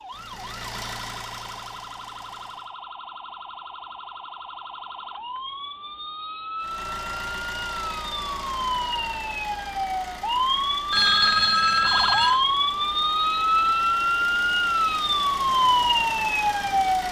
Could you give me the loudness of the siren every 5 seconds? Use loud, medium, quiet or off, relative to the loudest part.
quiet, medium, loud, loud.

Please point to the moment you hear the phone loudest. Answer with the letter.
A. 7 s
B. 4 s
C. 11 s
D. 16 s
C.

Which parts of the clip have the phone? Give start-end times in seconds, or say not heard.
10.9-12.4.